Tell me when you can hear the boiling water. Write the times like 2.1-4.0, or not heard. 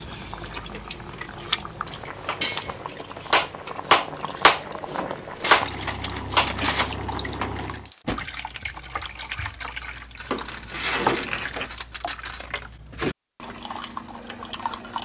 0.0-7.9.